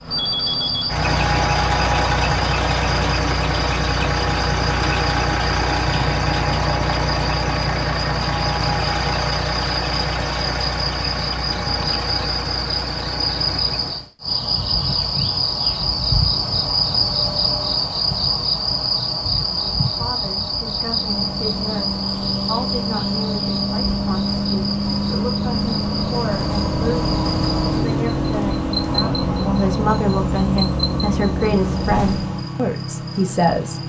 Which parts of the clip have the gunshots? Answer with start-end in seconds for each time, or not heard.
not heard.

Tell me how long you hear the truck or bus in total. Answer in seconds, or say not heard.
26 s.